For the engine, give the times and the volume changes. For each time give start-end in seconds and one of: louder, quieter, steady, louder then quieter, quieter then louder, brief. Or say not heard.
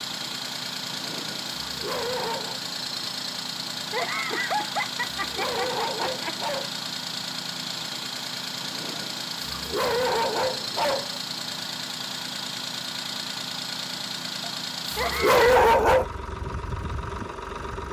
0.0-17.8 steady.